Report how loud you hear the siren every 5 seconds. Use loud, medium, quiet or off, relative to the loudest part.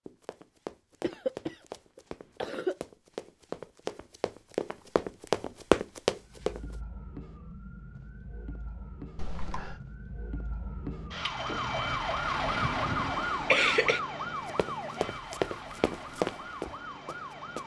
off, quiet, loud, medium.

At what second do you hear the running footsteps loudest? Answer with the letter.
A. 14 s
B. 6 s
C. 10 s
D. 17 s
B.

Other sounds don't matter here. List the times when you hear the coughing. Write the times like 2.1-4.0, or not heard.
1.0-2.8, 9.2-9.8, 12.6-14.0.